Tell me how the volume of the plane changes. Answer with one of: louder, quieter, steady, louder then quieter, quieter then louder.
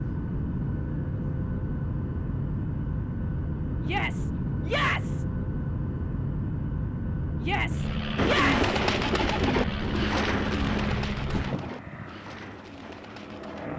steady.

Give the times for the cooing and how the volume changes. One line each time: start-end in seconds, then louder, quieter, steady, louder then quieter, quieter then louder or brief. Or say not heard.
8.2-13.7 quieter.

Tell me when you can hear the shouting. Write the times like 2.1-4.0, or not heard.
3.8-5.2, 7.4-8.8.